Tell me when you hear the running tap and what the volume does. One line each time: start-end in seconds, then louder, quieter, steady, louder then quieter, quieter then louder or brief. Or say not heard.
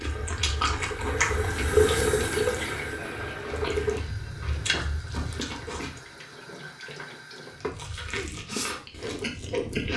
0.0-7.8 quieter.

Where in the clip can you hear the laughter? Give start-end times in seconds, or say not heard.
2.9-3.8.